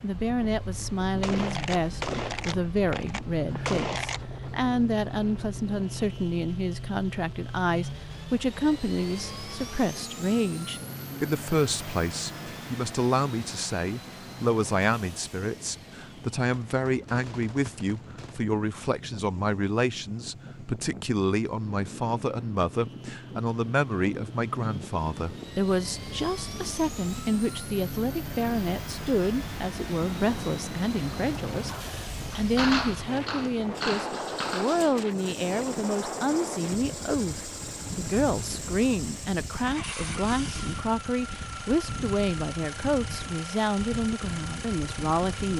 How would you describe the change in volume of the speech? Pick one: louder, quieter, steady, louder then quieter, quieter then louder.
steady.